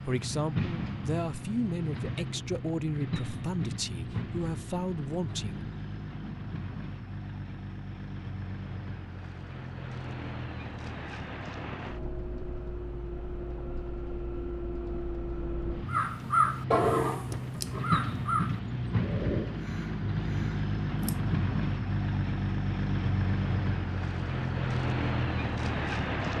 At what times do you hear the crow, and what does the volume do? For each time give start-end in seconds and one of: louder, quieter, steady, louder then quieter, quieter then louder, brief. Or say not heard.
15.8-21.3 quieter.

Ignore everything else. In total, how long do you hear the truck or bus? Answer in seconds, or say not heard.
26 s.